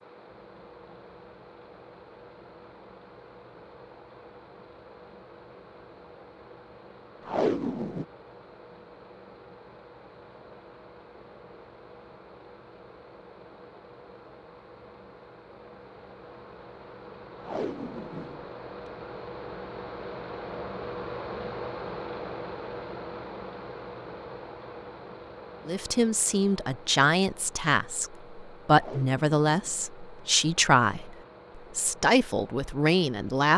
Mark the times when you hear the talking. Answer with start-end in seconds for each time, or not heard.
25.6-33.5.